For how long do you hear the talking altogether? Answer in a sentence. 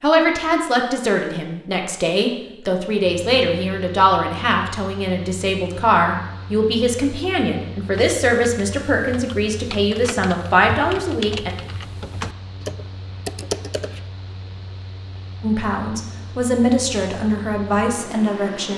You can hear the talking for 15 seconds altogether.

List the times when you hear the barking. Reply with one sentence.
The barking can't be heard in this clip.